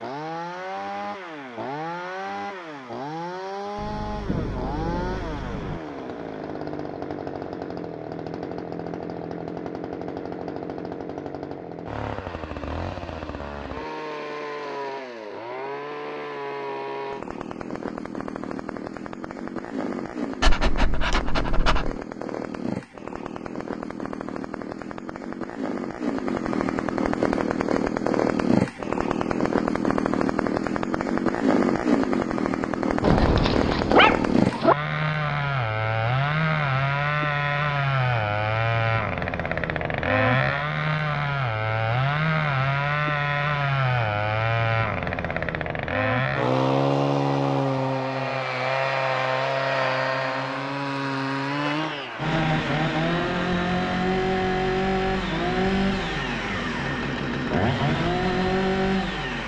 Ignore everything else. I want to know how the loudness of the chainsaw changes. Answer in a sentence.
The volume of the chainsaw goes up.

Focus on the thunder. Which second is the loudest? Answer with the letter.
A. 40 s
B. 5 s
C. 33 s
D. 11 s
C.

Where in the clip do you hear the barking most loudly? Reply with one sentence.
The volume of the barking peaks at 34 seconds.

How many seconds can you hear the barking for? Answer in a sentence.
You can hear the barking for 3 seconds altogether.